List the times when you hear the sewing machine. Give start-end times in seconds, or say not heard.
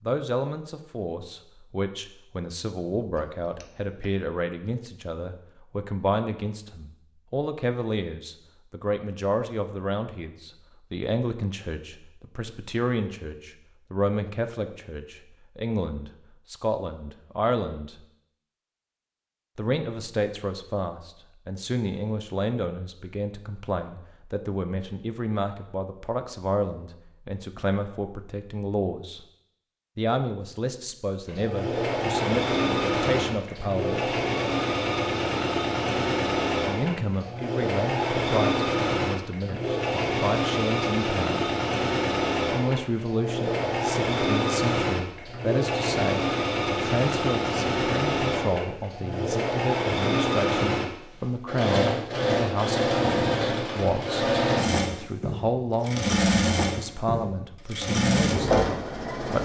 31.2-59.4.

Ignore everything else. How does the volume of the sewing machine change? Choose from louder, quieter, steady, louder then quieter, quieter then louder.
steady.